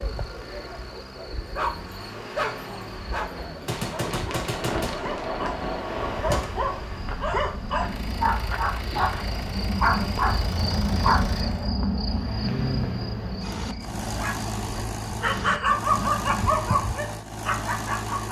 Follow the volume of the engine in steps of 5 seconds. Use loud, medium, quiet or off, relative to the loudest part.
medium, medium, loud, loud.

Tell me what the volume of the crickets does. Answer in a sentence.
The loudness of the crickets goes up, then down.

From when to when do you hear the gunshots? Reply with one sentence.
The gunshots can be heard from 3.6 to 6.5 s.